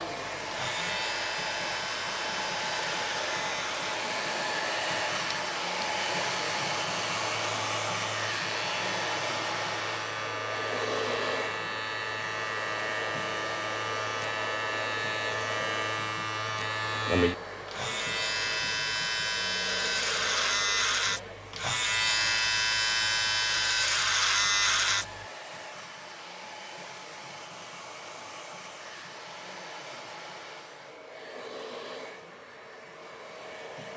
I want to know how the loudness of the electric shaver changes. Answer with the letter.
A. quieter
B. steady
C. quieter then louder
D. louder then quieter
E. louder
E.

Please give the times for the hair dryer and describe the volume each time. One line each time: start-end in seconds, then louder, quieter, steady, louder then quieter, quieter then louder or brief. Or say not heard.
0.0-33.9 quieter.